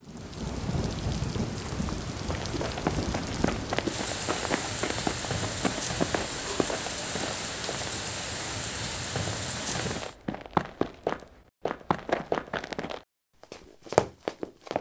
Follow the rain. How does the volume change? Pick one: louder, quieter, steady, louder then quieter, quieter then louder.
steady.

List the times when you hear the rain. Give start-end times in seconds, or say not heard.
0.0-10.2.